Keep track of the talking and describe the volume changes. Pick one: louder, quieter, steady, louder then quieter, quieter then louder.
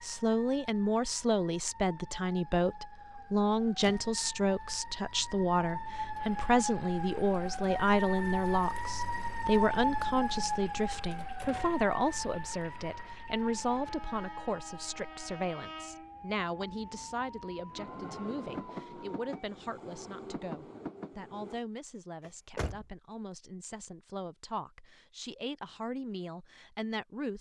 quieter.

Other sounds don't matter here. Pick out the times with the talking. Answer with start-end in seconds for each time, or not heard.
0.0-27.3.